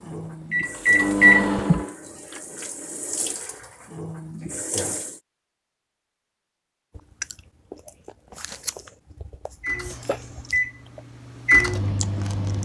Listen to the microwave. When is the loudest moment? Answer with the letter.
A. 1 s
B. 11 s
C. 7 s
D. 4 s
A.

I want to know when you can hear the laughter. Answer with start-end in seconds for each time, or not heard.
1.6-2.4.